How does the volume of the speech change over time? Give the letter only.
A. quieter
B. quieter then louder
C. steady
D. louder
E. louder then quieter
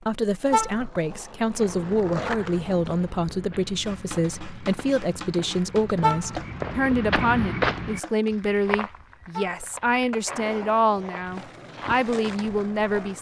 C.